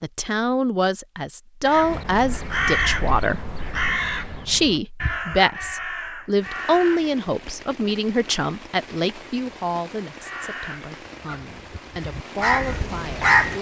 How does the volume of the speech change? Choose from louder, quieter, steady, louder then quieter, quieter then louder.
quieter.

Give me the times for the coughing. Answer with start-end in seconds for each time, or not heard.
not heard.